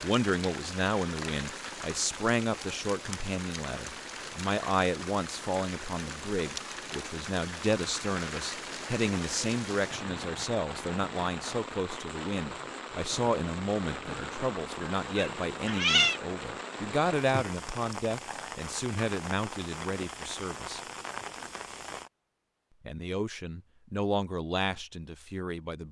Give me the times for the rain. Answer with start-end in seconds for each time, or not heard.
0.0-22.1.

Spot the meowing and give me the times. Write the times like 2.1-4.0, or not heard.
15.1-16.2.